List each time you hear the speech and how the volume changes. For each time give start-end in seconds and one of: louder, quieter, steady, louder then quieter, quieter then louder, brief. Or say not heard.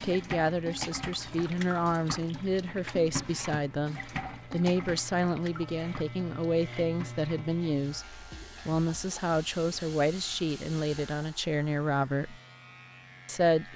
0.0-12.4 steady
13.2-13.7 brief.